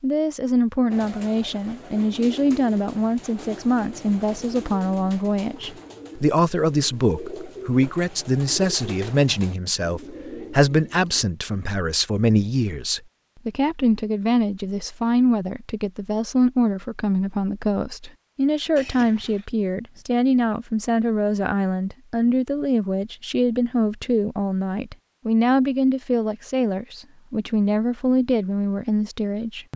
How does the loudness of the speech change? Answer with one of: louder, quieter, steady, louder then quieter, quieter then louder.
steady.